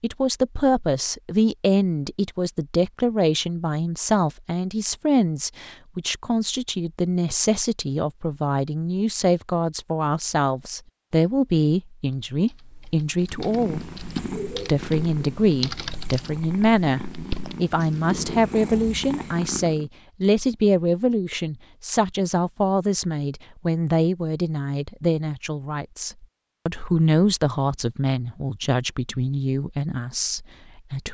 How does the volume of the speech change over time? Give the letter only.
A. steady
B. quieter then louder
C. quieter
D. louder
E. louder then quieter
A.